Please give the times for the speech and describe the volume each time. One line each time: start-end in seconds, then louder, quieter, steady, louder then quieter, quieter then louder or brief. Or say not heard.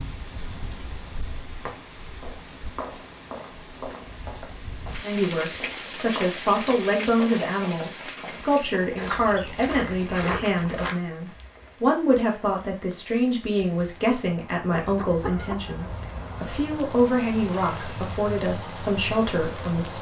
5.0-19.9 steady.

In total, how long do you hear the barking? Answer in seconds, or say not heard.
not heard.